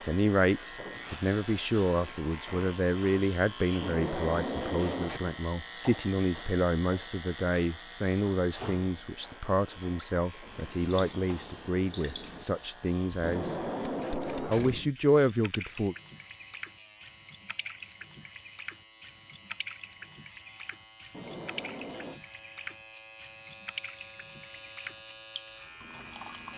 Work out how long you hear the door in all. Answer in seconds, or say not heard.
4 s.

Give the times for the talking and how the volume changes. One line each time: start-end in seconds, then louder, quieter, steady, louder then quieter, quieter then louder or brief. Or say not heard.
0.0-13.6 steady
14.4-15.9 brief.